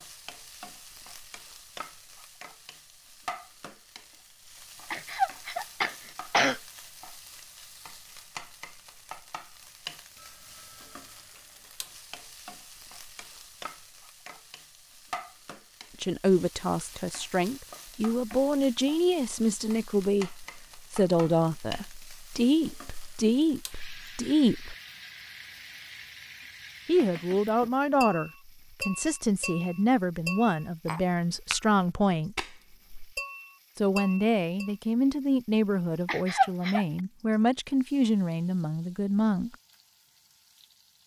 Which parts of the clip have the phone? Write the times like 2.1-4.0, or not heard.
10.2-11.3.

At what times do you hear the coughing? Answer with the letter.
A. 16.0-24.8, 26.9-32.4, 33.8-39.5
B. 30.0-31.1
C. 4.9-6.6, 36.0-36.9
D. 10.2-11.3
C.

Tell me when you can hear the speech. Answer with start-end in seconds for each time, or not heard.
16.0-24.8, 26.9-32.4, 33.8-39.5.